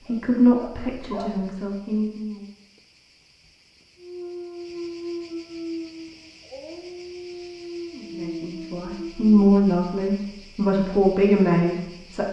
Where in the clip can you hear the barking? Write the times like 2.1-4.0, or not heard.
0.0-1.6, 4.0-9.4.